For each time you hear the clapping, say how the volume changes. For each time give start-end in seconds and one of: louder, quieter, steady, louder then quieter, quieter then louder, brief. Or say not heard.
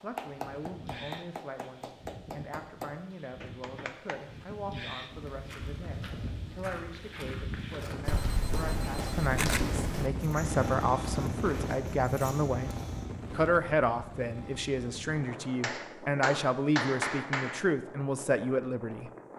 0.0-4.2 quieter
15.6-17.6 brief.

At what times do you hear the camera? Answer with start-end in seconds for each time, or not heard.
8.1-10.1.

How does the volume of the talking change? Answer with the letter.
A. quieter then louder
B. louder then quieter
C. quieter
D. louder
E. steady
D.